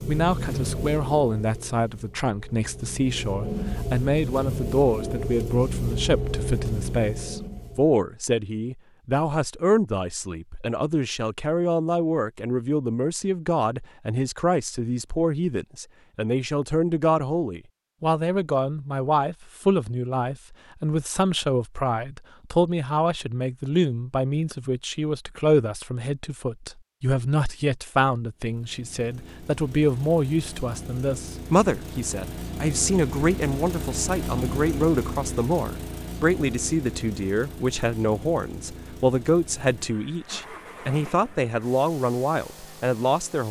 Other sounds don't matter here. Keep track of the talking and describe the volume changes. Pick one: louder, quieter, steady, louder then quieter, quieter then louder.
steady.